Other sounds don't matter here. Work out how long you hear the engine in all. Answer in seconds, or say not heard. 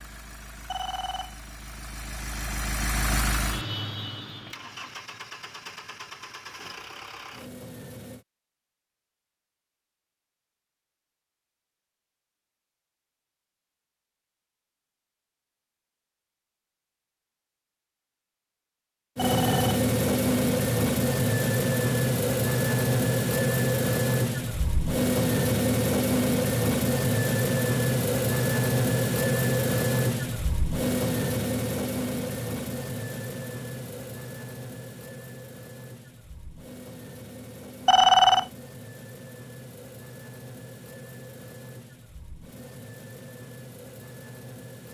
34 s.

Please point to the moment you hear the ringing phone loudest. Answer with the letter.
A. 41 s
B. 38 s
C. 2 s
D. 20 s
B.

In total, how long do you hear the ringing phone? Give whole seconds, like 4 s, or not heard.
2 s.